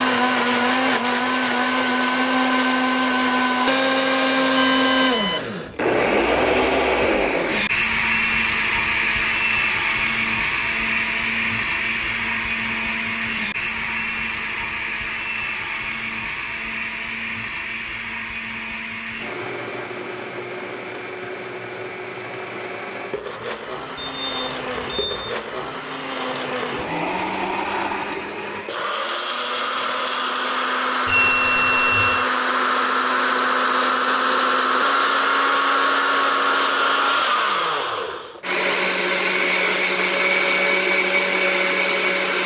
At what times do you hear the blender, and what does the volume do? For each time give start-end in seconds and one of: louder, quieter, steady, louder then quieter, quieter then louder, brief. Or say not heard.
0.0-42.4 quieter then louder.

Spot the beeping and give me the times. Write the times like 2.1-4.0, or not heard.
4.5-5.5, 23.9-25.4, 31.1-32.2.